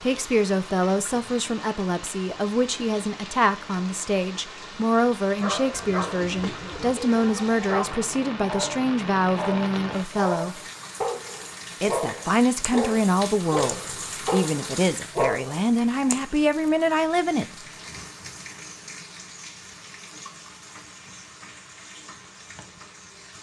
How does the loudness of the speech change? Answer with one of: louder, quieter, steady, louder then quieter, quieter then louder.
steady.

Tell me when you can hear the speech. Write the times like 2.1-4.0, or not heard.
0.0-10.6, 11.8-17.4.